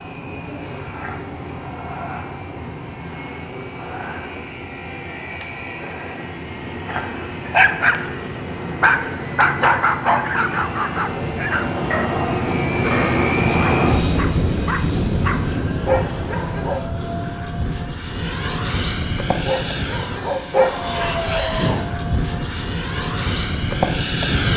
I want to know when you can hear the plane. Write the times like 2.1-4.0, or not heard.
0.0-24.5.